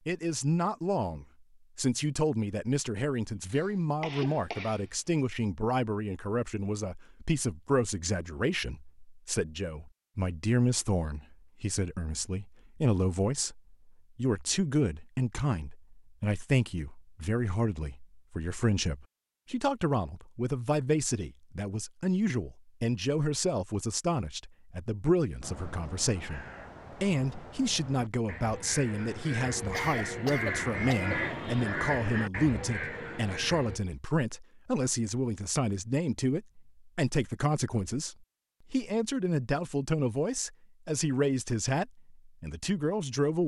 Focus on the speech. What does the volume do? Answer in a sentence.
The loudness of the speech stays about the same.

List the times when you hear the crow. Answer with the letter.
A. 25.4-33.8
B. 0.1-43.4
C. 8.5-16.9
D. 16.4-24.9
A.